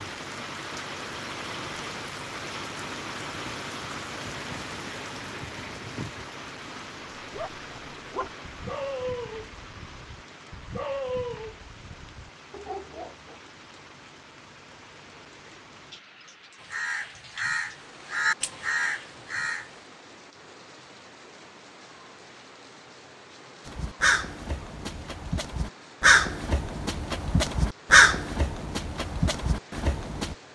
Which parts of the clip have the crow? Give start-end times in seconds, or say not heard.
16.6-19.7, 23.6-30.4.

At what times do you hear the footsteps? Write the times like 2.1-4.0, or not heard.
not heard.